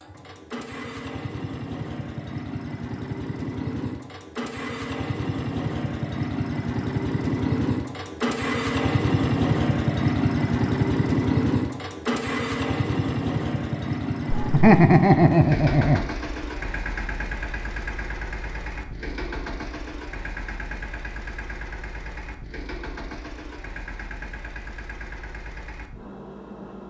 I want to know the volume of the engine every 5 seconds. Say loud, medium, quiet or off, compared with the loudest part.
medium, loud, loud, medium, quiet, quiet.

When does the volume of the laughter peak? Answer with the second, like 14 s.
15 s.